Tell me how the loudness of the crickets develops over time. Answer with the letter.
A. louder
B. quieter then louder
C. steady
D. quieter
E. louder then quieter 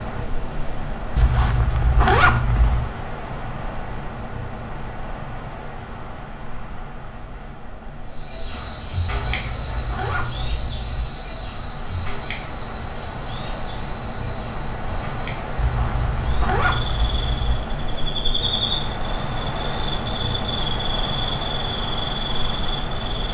D.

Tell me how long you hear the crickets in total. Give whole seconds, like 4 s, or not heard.
15 s.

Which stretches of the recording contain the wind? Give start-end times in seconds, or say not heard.
0.0-23.2.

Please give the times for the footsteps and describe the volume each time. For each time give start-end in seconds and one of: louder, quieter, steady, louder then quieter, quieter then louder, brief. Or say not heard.
not heard.